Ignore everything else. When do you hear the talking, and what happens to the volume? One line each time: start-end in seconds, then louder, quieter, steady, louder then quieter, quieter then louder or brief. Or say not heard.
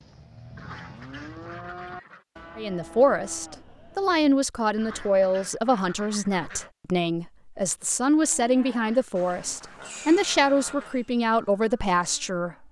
2.5-12.6 steady.